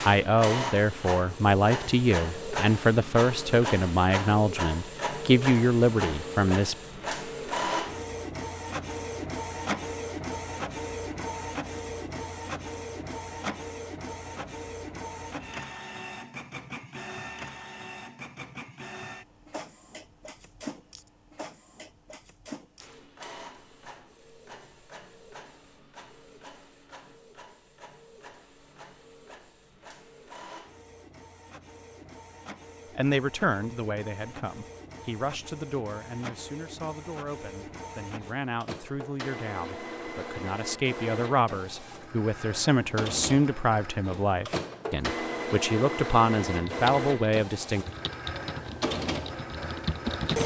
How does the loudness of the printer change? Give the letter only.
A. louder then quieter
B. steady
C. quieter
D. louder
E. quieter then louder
E.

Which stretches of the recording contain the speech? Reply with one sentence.
You can hear the speech from 0.0 to 6.8 s and from 33.0 to 47.9 s.